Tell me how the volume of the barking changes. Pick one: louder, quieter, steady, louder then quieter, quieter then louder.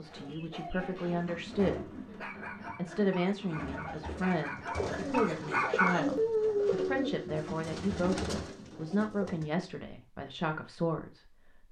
louder.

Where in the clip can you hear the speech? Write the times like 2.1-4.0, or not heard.
0.0-1.9, 2.8-11.6.